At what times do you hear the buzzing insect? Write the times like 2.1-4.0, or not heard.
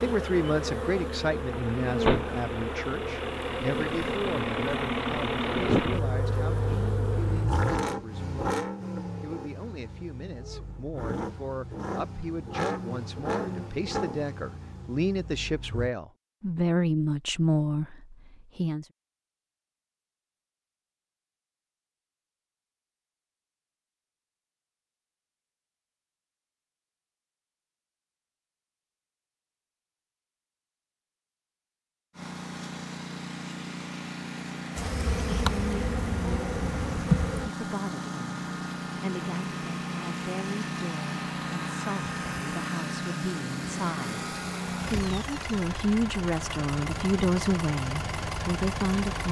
0.0-7.5, 34.8-37.5.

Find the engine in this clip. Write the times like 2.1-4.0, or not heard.
0.0-15.9, 32.1-49.2.